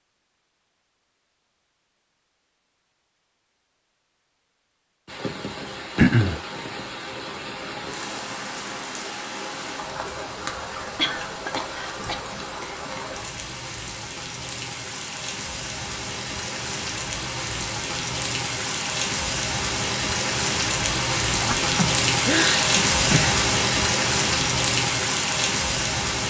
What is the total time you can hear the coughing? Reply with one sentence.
You can hear the coughing for 4 seconds altogether.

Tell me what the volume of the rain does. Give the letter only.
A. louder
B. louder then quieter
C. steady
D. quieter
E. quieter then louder
A.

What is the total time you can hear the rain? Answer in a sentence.
You can hear the rain for 21 seconds altogether.